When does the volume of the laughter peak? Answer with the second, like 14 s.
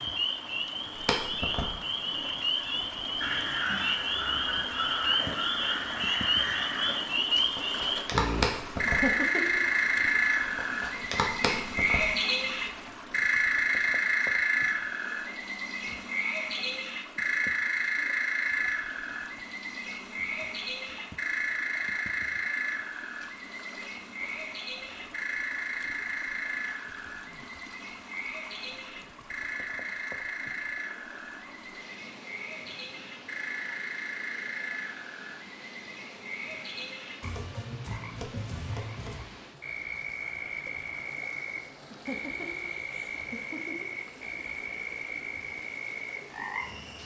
9 s.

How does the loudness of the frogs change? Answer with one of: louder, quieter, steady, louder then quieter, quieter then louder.
quieter.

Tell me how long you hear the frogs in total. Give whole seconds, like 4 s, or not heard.
47 s.